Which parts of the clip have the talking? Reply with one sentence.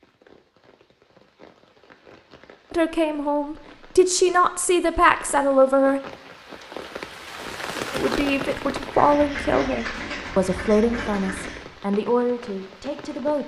You can hear the talking from 2.7 to 6.0 s and from 7.9 to 13.4 s.